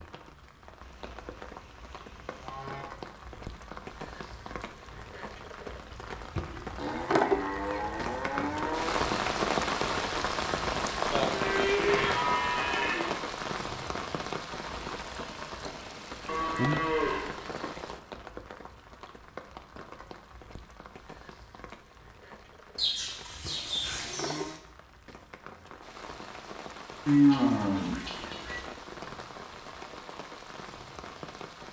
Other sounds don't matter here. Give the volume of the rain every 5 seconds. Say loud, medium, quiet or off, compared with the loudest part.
quiet, loud, loud, medium, quiet, quiet, quiet.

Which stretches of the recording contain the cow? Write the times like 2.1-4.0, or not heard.
0.8-2.9, 6.8-8.9, 11.1-13.2, 16.2-17.4, 22.8-24.6, 27.1-28.6.